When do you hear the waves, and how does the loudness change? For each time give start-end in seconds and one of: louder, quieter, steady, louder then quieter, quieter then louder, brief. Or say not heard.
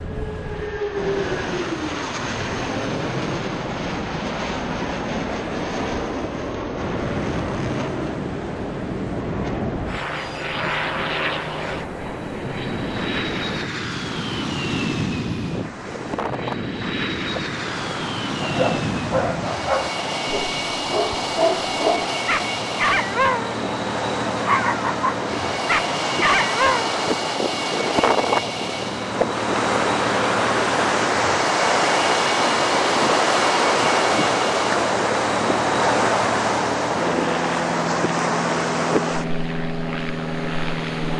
0.0-41.1 louder.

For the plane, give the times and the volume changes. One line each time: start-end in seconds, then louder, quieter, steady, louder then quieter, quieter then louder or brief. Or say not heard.
0.0-41.1 steady.